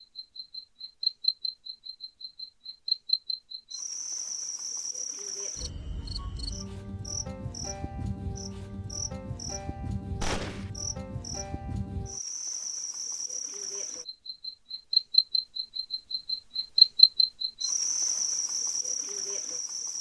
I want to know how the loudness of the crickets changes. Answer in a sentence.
The volume of the crickets goes down, then up.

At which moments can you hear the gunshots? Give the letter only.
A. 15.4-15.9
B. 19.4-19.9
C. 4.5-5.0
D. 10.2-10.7
D.